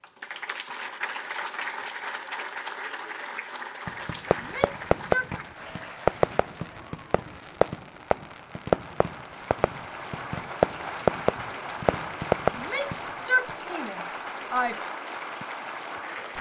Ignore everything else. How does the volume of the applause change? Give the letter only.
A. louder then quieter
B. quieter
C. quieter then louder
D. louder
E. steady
C.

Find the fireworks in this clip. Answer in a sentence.
You can hear the fireworks from 3.9 to 13.2 s.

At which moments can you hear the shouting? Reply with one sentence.
You can hear the shouting from 4.3 to 5.3 s and from 12.6 to 14.8 s.